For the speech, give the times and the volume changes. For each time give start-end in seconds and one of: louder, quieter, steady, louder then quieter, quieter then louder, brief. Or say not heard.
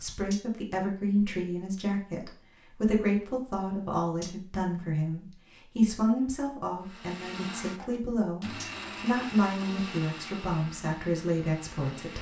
0.0-12.1 steady.